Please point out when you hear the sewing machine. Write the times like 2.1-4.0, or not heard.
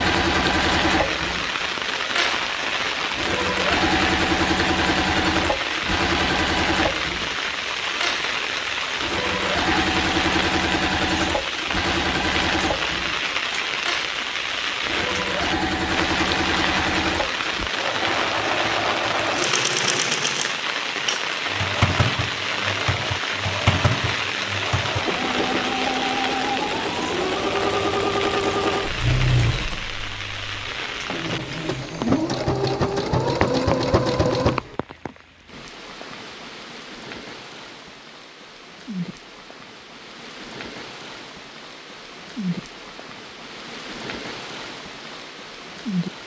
0.0-34.8.